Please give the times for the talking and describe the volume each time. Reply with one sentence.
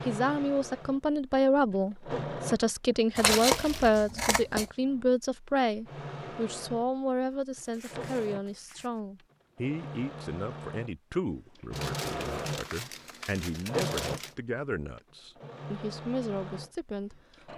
You can hear the talking from 0.1 to 17.5 s, getting quieter.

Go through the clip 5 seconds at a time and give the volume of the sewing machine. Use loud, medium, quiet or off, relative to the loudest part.
loud, medium, loud, medium.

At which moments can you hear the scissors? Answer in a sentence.
You can hear the scissors from 3.1 to 4.7 s.